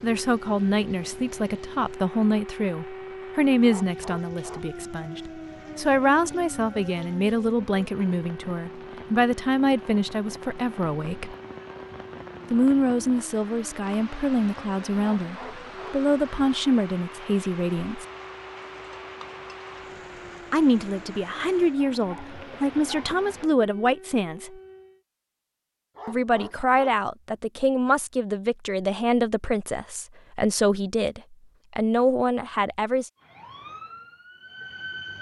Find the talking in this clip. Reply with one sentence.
You can hear the talking from 0.0 to 11.3 s, from 12.5 to 18.1 s, from 20.5 to 24.6 s and from 26.1 to 33.1 s.